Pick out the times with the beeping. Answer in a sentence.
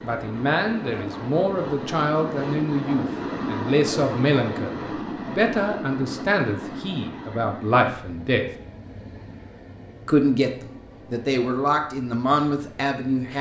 The beeping can't be heard in this clip.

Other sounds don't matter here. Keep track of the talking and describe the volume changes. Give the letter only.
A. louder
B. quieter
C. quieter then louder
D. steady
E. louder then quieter
D.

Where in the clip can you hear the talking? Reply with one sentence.
You can hear the talking from 0.0 to 8.5 s and from 10.1 to 13.3 s.